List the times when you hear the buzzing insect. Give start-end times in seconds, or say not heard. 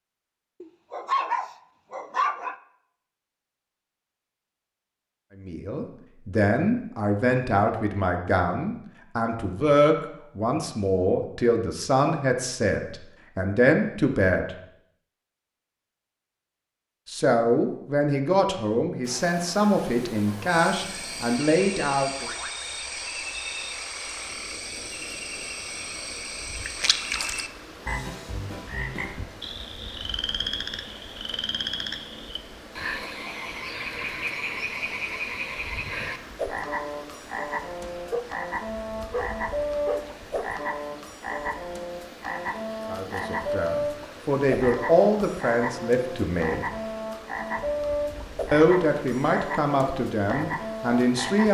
not heard.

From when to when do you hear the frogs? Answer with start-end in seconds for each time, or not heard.
20.4-51.4.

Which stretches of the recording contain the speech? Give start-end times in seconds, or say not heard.
5.3-14.6, 17.1-22.3, 42.9-46.6, 48.5-51.4.